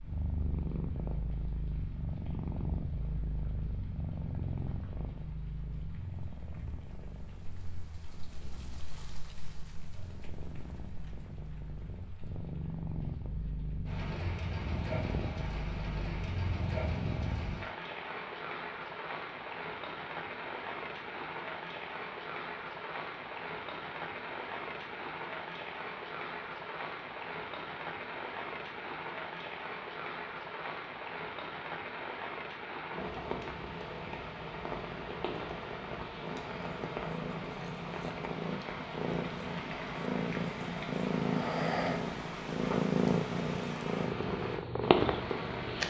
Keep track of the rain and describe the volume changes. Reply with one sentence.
The volume of the rain goes up.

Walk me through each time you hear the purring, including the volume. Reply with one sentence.
The purring can be heard from 0.0 to 17.6 s, getting quieter then louder; and from 32.9 to 45.8 s, getting louder.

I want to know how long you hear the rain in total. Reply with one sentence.
The rain can be heard for 46 seconds in total.